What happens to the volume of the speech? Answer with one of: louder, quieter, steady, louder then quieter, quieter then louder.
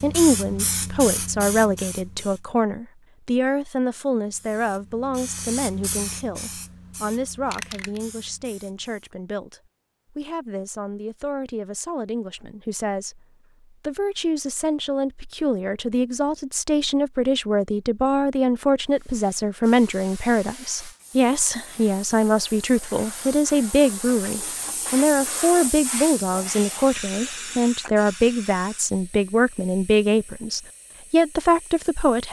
quieter then louder.